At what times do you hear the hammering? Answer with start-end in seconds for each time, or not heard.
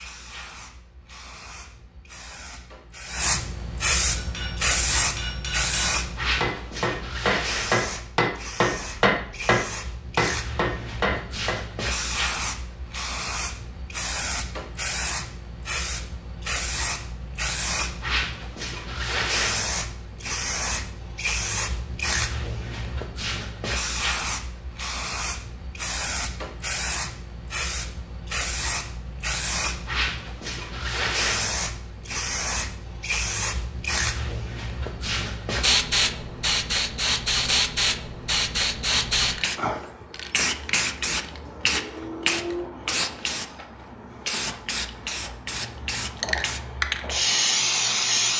4.2-11.6.